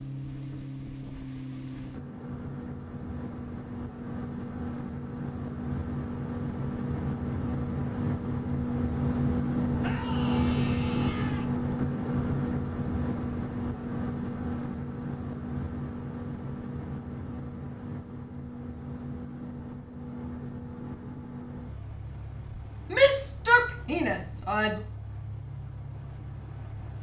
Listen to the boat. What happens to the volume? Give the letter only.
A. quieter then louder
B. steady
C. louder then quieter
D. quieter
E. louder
C.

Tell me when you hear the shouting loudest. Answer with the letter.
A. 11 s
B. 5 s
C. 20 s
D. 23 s
D.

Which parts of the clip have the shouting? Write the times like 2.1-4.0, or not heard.
9.8-11.4, 22.9-24.8.